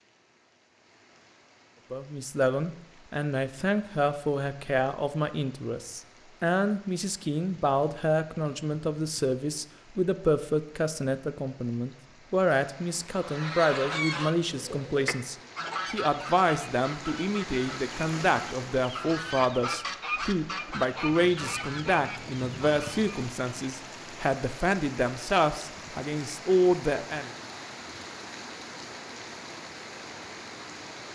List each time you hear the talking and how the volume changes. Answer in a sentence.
The talking can be heard from 1.9 to 27.3 s, at a steady volume.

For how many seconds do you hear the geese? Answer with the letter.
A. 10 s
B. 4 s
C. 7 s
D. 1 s
A.